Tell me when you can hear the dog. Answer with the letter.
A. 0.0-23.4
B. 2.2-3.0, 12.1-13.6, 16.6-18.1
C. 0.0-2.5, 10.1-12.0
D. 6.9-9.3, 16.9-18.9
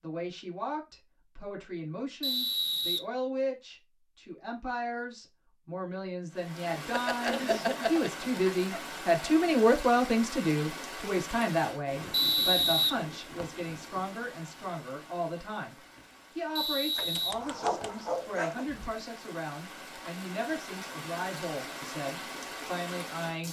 D.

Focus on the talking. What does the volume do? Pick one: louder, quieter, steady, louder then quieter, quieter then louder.
louder then quieter.